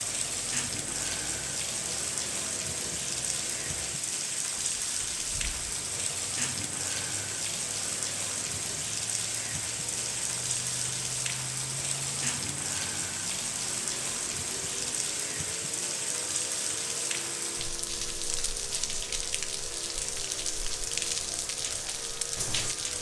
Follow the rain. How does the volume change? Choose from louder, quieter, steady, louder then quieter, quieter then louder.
steady.